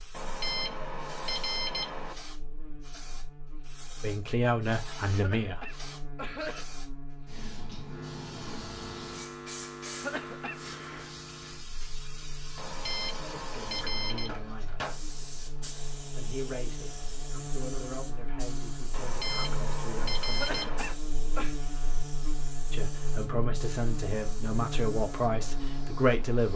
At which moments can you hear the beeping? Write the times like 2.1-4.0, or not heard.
0.1-2.1, 12.6-14.4, 18.9-20.9.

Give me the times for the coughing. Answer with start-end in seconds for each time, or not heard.
5.0-6.7, 9.8-10.6, 20.2-21.6.